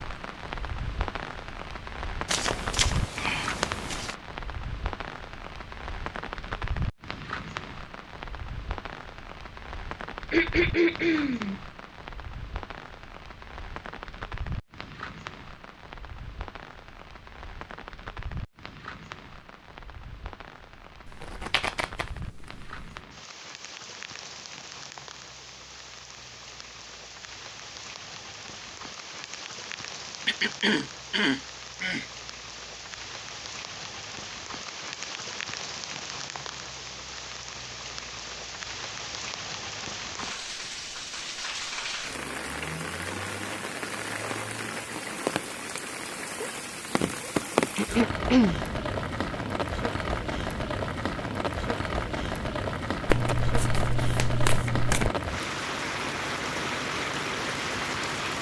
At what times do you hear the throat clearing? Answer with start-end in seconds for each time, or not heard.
10.3-11.6, 30.2-32.0, 47.8-48.6.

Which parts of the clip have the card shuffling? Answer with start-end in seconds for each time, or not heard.
2.2-4.2, 21.1-22.9, 53.0-55.1.